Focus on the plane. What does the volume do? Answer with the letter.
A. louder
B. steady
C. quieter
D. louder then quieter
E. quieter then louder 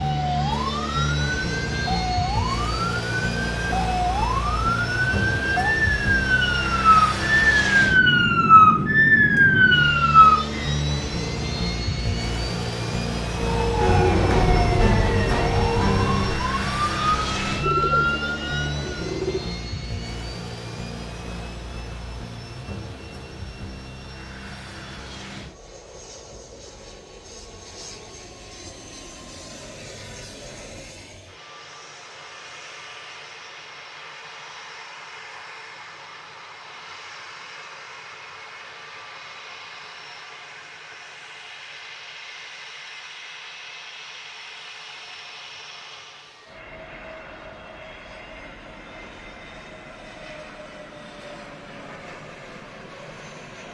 C.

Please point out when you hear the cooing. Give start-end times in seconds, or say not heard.
17.6-19.6.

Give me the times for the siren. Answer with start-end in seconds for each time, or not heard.
0.0-10.7, 13.3-18.9.